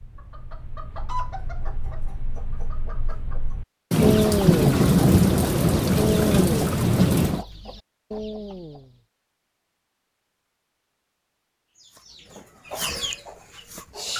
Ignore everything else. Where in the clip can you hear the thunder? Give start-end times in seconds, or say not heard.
3.9-7.5.